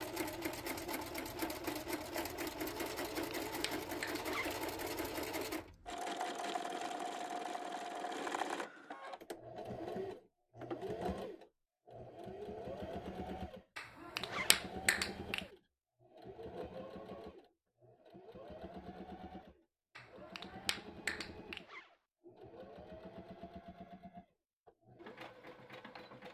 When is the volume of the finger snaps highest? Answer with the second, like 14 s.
15 s.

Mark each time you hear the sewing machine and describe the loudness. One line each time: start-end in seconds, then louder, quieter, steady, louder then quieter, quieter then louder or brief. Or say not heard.
0.0-26.2 quieter.